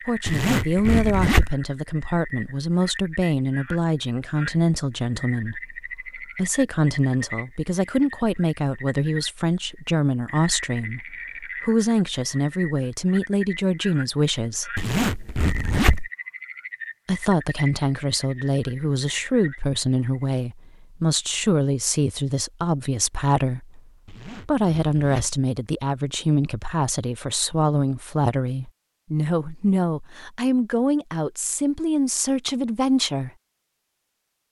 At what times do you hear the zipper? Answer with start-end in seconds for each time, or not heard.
0.2-1.6, 14.8-16.1, 24.1-25.4.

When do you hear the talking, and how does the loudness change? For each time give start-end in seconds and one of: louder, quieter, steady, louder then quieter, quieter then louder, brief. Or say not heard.
0.1-14.8 steady
17.1-33.3 steady.